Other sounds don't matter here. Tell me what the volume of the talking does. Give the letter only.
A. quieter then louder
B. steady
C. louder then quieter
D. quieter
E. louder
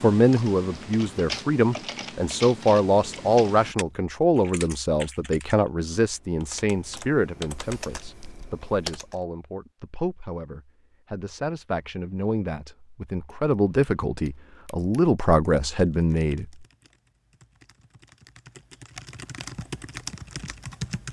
A.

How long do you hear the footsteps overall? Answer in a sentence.
You can't hear the footsteps here.